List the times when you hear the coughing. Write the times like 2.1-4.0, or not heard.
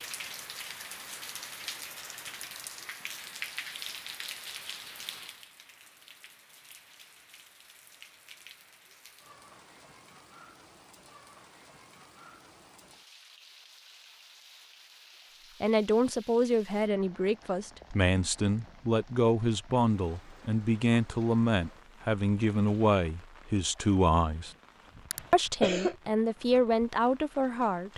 25.1-26.1.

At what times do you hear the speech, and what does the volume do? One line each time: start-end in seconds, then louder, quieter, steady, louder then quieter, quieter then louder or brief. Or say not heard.
15.6-24.5 steady
25.3-27.9 brief.